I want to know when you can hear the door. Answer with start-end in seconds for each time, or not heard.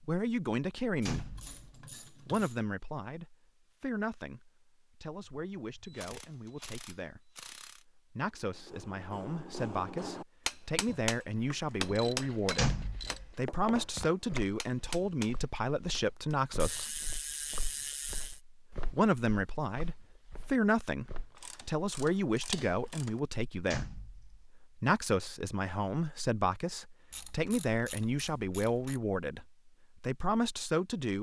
1.1-1.6, 12.6-13.3, 23.7-24.4.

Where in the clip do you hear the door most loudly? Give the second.
13 s.